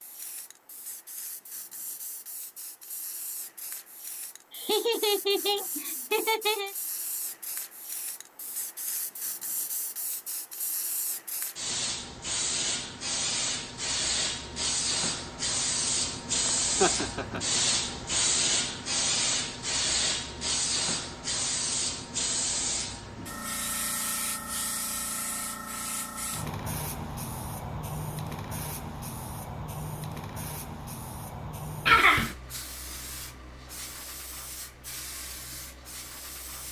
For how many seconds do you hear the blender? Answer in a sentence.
You can't hear the blender here.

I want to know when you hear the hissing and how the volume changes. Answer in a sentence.
You can hear the hissing from 0.0 to 36.6 s, getting louder then quieter.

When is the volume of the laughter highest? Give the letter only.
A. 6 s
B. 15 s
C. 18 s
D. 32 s
D.